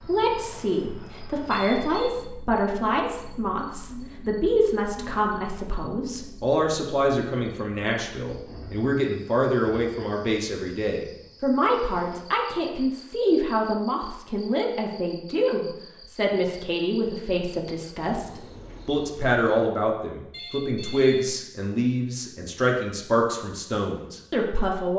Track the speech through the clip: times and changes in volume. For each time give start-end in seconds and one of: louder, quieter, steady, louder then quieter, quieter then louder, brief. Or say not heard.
0.0-24.9 steady.